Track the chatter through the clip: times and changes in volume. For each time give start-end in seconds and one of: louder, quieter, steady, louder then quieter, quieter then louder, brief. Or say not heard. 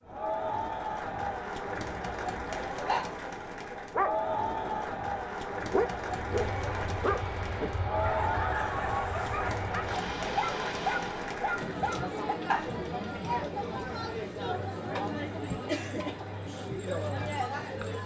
0.1-18.0 steady.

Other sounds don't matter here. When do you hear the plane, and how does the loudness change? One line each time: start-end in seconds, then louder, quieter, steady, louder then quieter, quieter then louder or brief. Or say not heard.
6.1-11.4 steady.